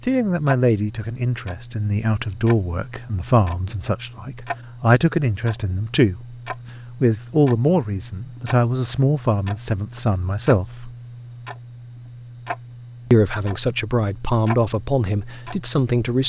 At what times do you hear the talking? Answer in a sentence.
The talking can be heard from 0.1 to 6.2 s, from 7.0 to 10.9 s and from 13.1 to 16.2 s.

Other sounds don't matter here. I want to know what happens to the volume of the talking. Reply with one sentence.
The loudness of the talking stays about the same.